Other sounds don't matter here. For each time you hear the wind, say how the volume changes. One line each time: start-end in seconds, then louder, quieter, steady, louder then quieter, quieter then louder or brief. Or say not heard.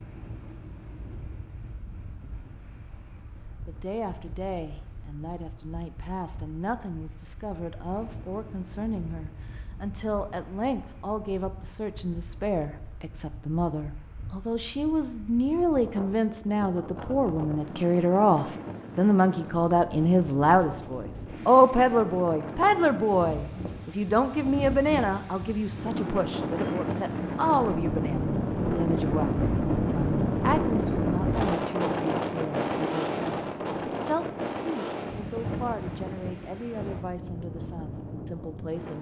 0.0-38.9 louder.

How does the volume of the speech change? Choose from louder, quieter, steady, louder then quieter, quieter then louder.
louder then quieter.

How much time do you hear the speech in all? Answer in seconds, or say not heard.
35 s.